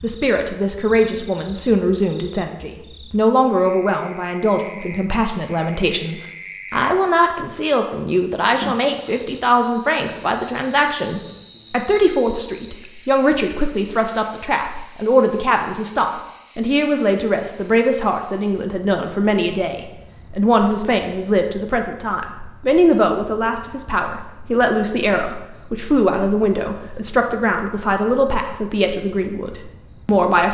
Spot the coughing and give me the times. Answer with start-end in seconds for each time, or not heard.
not heard.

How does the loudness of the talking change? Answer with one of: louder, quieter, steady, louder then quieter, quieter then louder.
steady.